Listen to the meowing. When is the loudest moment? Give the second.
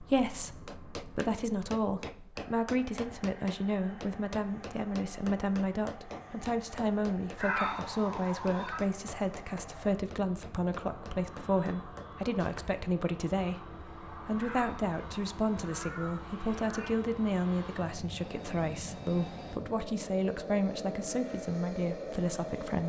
8 s.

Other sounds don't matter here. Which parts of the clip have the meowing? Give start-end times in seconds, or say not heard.
7.3-8.8, 14.3-16.9.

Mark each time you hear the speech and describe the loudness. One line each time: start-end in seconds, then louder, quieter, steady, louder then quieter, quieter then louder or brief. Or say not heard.
0.0-22.8 steady.